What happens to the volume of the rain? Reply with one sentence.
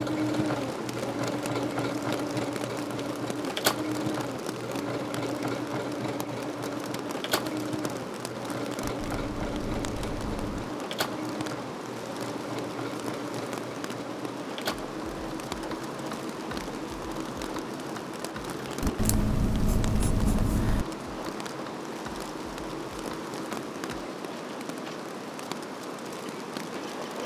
The loudness of the rain stays about the same.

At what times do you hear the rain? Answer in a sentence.
The rain can be heard from 0.1 to 27.2 s.